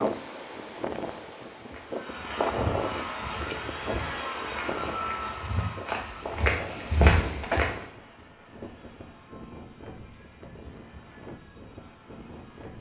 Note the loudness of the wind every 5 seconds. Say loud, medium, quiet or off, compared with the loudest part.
loud, medium, quiet.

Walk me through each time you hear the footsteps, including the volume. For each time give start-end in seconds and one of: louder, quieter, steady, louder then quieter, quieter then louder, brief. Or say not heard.
1.7-7.8 quieter then louder.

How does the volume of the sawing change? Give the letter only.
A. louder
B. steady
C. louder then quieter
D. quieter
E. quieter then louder
D.